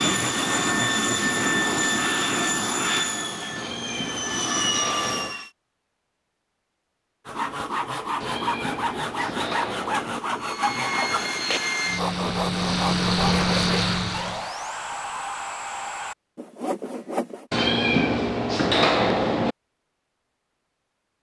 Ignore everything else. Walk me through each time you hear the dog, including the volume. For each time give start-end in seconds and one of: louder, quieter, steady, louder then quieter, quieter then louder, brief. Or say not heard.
not heard.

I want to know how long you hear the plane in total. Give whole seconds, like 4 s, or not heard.
10 s.